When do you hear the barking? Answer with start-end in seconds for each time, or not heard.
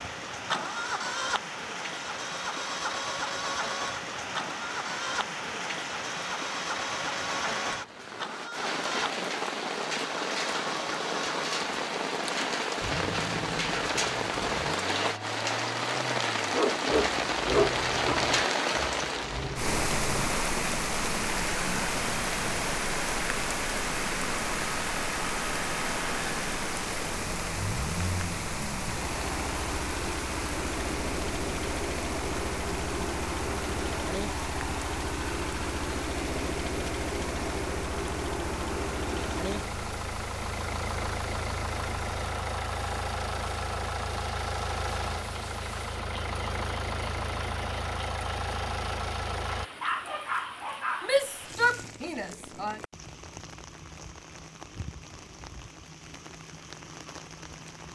16.5-18.2, 49.5-51.1.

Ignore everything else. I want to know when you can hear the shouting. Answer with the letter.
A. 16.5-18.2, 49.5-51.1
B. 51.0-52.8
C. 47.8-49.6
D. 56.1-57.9
B.